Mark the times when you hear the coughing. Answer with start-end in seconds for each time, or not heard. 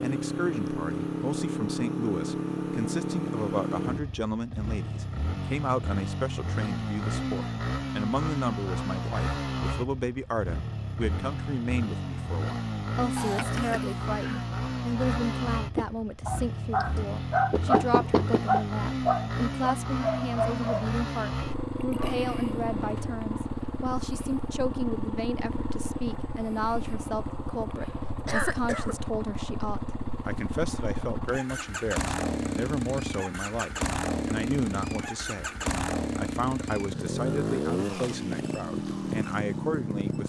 13.2-14.4, 28.2-28.9.